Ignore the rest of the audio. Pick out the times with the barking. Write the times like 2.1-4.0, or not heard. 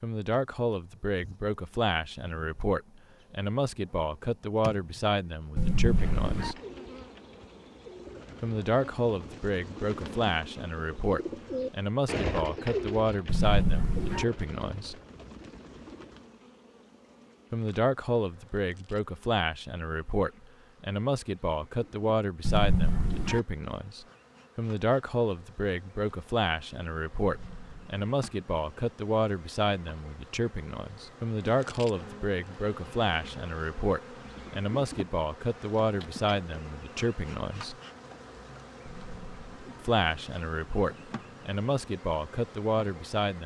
5.5-6.5, 13.2-14.2, 22.4-23.4, 27.1-27.9, 38.9-39.8.